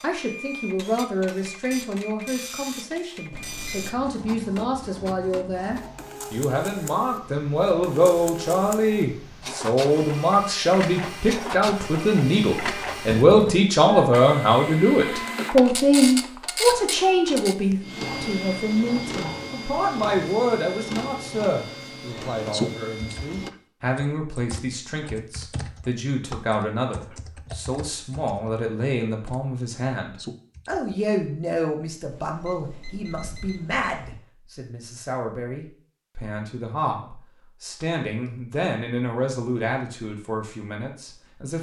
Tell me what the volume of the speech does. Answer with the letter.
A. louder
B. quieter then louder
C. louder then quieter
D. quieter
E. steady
C.